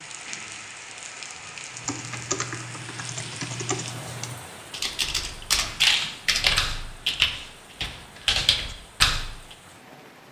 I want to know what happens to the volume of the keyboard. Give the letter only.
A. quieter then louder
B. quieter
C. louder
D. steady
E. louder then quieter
C.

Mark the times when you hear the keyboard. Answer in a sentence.
The keyboard can be heard from 1.7 to 9.6 s.